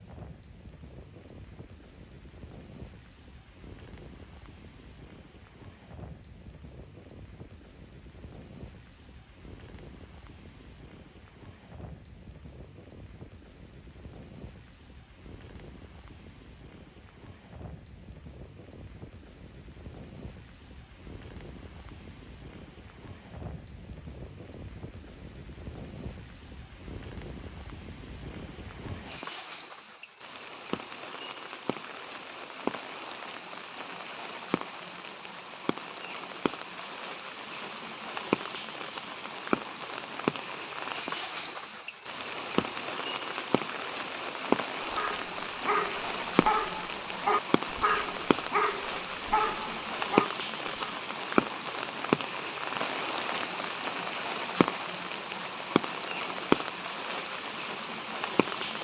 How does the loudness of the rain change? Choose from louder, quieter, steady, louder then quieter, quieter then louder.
louder.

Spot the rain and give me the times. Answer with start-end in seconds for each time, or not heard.
0.0-58.8.